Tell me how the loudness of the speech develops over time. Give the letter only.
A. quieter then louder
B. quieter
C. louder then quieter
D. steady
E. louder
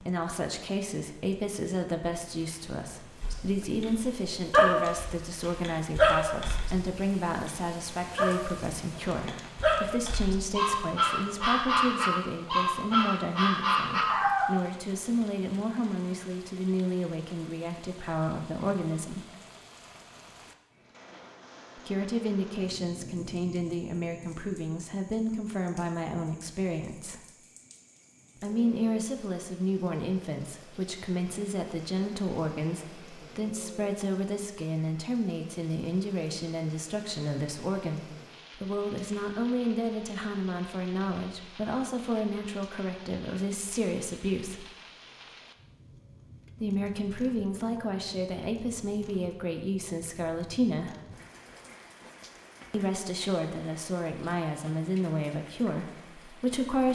D.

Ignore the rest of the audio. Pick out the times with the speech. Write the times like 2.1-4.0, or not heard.
0.0-19.2, 21.8-27.2, 28.4-44.6, 46.6-51.0, 52.7-56.8.